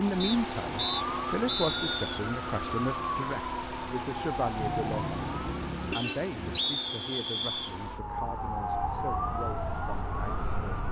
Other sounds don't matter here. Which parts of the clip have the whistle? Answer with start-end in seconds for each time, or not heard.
0.2-2.2, 6.0-7.8.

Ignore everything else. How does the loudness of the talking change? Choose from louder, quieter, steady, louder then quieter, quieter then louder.
quieter.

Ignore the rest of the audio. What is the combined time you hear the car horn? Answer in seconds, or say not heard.
2 s.